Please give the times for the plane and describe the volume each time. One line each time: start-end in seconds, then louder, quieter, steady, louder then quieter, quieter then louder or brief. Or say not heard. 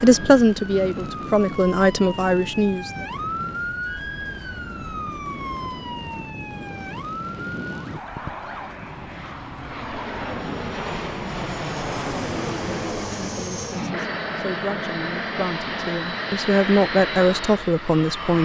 0.0-18.4 louder.